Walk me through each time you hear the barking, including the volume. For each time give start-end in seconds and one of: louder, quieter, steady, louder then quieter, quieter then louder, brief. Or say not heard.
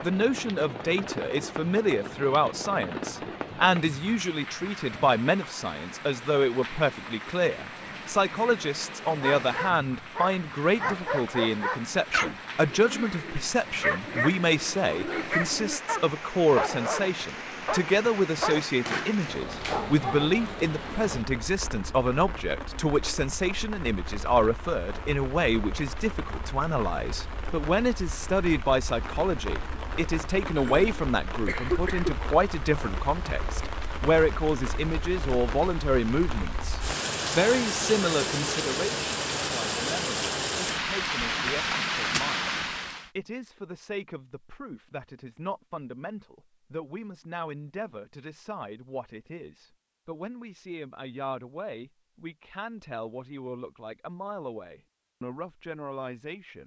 9.1-20.3 steady.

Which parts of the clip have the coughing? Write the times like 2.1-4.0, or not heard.
30.6-32.1.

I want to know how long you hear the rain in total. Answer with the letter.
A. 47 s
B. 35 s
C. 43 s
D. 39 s
C.